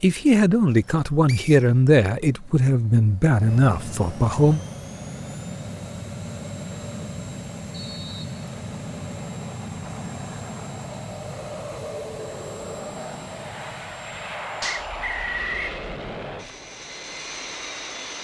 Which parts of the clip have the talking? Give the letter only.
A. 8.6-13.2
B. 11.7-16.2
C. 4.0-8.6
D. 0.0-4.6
D.